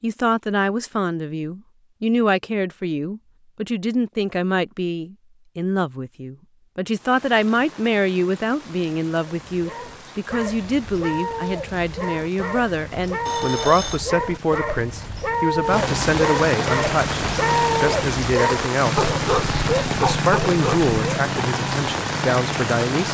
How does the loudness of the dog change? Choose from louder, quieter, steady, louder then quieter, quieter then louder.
louder.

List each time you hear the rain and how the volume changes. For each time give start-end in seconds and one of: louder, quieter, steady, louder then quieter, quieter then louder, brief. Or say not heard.
6.9-23.0 louder.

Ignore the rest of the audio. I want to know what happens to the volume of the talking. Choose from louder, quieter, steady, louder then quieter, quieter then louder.
steady.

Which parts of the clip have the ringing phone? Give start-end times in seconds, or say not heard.
13.2-14.1.